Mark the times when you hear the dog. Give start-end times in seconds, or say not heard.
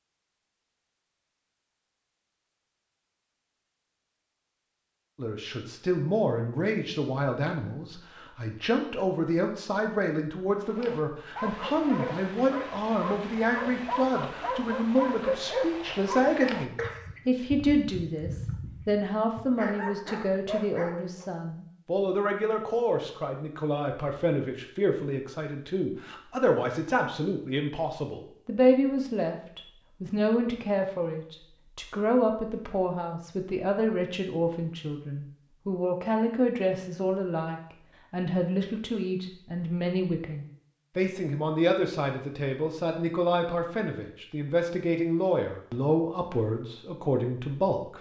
10.5-21.3.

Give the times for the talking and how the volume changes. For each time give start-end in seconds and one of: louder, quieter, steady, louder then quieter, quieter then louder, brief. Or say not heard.
5.2-47.9 steady.